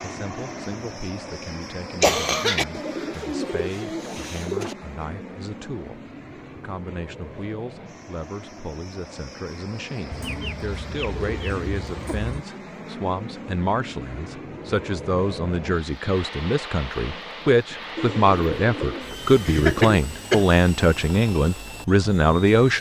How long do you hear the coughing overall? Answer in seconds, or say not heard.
2 s.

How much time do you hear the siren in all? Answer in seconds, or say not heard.
not heard.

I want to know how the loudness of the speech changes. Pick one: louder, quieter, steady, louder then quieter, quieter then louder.
louder.